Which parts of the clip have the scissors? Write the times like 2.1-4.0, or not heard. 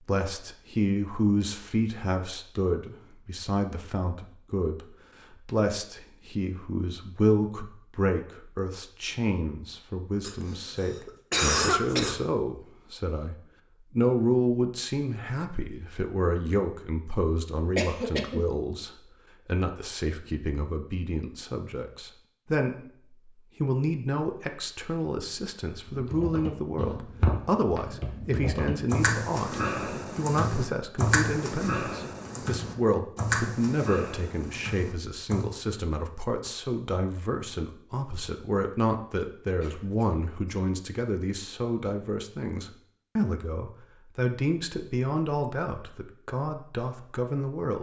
not heard.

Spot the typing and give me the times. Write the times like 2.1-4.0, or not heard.
25.9-35.5.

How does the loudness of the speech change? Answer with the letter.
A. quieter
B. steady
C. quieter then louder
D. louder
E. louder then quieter
B.